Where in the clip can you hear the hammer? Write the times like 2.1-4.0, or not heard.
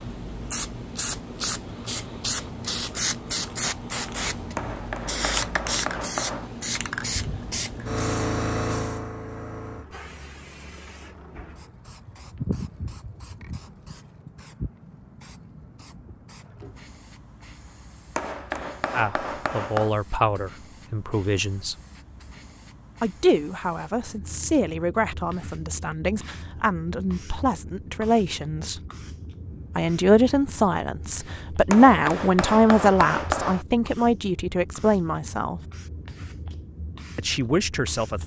4.5-6.5, 18.1-19.9, 31.7-33.6.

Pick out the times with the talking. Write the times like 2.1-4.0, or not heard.
18.9-21.8, 23.0-28.8, 29.8-35.6, 37.1-38.2.